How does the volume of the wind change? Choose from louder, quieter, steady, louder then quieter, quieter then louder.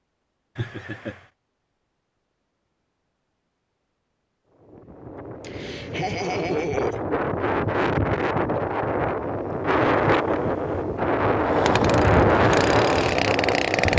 louder.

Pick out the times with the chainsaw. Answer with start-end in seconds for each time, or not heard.
11.4-13.9.